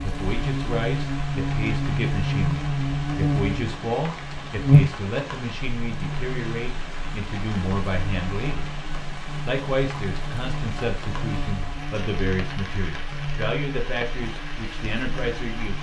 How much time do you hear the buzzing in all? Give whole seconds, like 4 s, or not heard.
16 s.